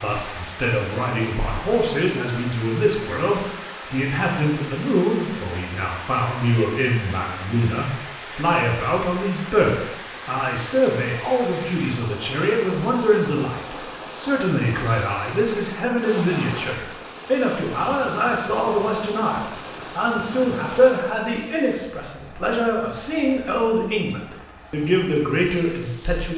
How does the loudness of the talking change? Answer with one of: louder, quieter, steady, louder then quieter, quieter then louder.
steady.